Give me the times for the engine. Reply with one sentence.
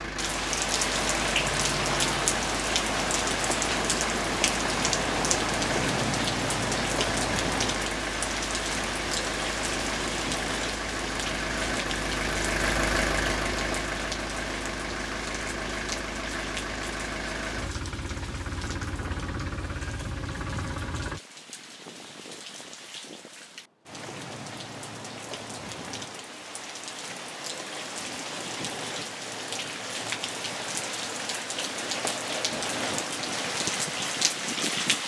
You can hear the engine from 0.0 to 21.2 s.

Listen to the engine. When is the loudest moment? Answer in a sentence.
The loudest moment of the engine is at 13 seconds.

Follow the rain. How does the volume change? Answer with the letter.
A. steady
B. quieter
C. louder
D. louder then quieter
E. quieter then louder
E.